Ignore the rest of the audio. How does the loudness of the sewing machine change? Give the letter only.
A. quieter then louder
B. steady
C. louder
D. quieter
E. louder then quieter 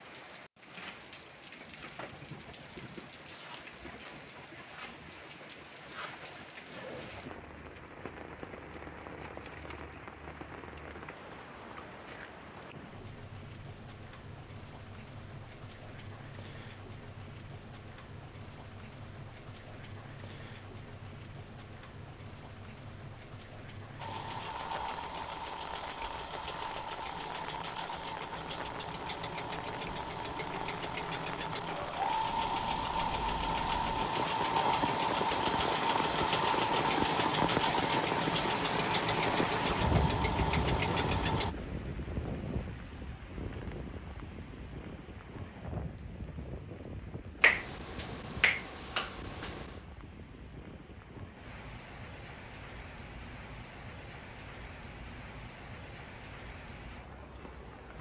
C.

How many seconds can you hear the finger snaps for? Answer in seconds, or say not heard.
2 s.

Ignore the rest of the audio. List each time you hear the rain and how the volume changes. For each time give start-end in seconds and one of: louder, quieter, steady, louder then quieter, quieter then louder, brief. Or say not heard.
0.0-57.9 louder then quieter.